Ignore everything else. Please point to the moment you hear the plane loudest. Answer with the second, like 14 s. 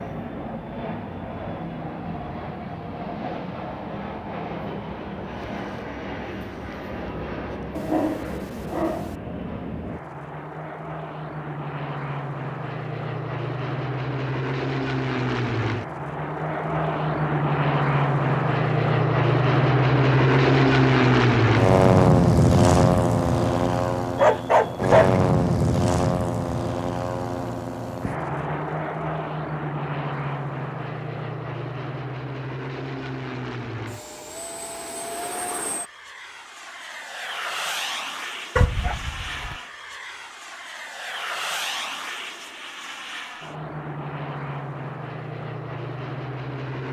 22 s.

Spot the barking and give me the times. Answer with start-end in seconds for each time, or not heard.
7.8-9.2, 24.1-25.2, 38.5-39.5.